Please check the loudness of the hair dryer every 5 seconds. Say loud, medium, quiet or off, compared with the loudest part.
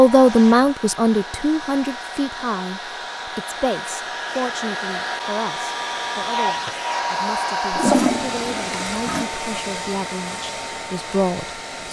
medium, loud, medium.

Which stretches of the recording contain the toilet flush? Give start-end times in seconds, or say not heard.
7.7-9.2.